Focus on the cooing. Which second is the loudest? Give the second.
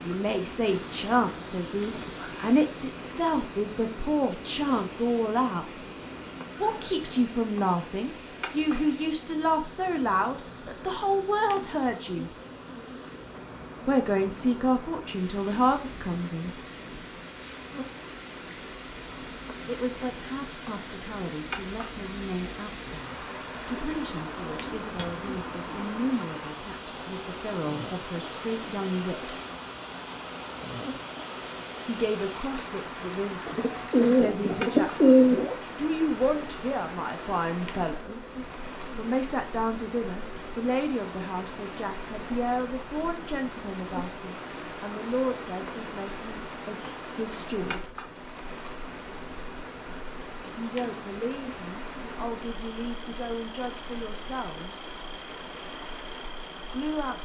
35 s.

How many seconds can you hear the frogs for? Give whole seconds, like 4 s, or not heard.
not heard.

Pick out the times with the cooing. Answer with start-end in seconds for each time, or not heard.
23.5-25.9, 33.5-35.5.